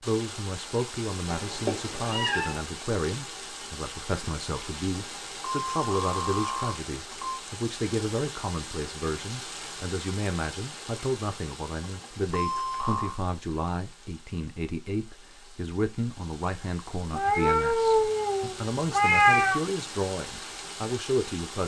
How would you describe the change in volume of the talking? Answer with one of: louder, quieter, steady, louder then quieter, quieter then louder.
steady.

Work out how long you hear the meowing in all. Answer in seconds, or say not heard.
4 s.